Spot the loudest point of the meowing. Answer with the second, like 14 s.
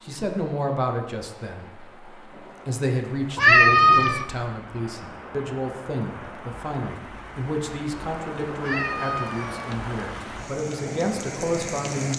4 s.